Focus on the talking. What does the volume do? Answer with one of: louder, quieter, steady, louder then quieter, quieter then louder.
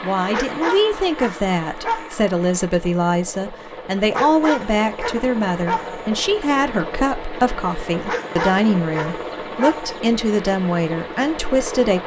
steady.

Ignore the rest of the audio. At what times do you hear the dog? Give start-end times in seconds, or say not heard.
0.3-2.1, 4.1-6.0, 8.1-9.9.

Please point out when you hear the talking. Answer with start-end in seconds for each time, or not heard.
0.0-12.0.